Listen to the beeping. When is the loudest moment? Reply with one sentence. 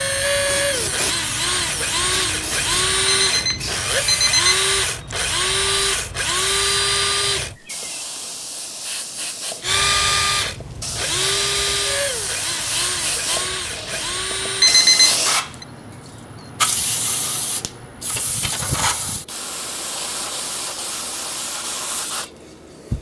The loudest moment of the beeping is at 15 seconds.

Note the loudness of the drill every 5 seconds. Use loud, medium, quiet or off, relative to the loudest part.
loud, loud, loud, off, off.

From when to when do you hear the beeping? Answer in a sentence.
The beeping can be heard from 3.0 to 4.6 s and from 14.6 to 15.7 s.